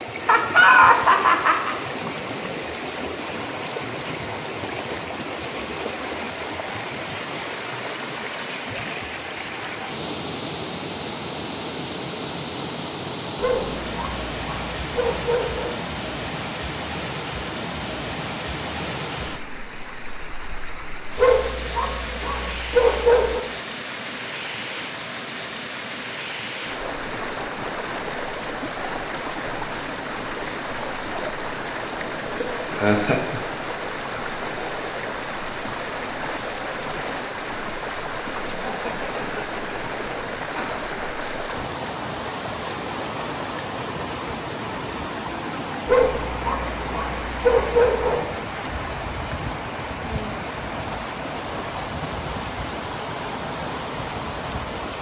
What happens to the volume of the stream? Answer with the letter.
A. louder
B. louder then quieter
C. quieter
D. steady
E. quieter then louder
D.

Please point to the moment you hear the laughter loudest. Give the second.
1 s.